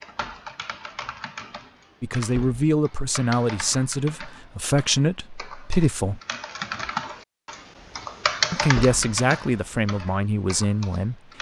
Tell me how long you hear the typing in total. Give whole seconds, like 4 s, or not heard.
11 s.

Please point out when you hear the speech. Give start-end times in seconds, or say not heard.
2.0-6.2, 8.5-11.2.